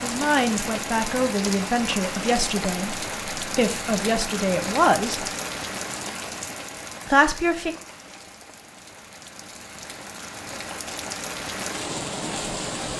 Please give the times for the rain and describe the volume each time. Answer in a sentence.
The rain can be heard from 0.0 to 12.9 s, getting quieter then louder.